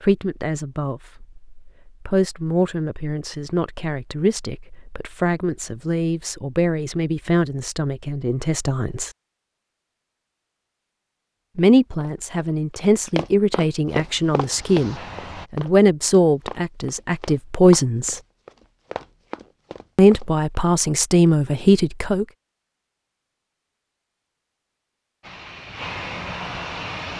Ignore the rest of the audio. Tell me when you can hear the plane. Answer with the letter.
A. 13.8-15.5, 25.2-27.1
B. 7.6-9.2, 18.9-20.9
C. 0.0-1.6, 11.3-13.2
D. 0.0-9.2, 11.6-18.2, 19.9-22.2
A.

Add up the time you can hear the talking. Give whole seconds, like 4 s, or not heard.
18 s.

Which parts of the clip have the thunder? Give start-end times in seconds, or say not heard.
not heard.